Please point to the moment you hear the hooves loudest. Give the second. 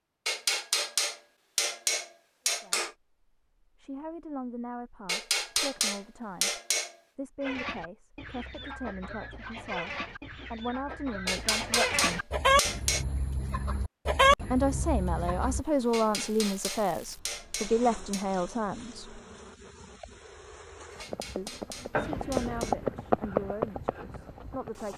23 s.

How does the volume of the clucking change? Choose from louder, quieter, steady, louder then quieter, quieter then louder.
louder.